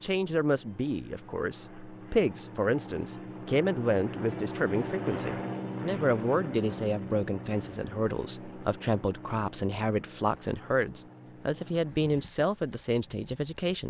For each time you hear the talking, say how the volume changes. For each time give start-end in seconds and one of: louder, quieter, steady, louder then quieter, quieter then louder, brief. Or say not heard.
0.0-13.8 steady.